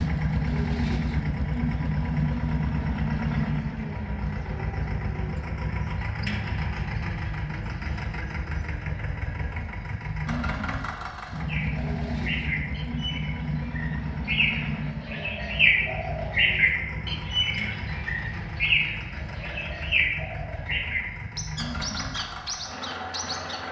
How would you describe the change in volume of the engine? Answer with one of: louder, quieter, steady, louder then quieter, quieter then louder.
quieter.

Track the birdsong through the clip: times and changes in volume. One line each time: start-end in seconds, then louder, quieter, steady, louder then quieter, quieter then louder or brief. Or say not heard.
11.4-23.6 louder then quieter.